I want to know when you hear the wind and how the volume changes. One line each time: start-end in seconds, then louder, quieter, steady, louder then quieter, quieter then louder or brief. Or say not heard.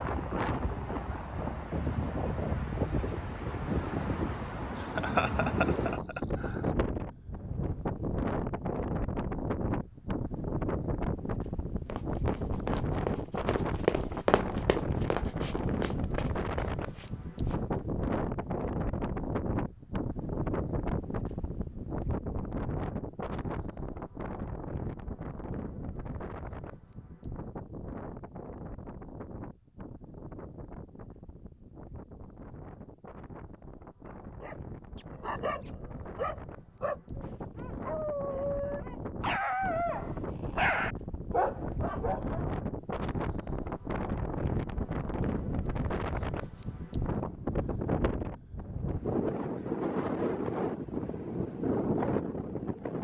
0.0-52.9 quieter then louder.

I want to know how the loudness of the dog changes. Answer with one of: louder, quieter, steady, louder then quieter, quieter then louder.
louder.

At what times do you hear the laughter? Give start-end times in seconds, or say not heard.
4.8-6.7.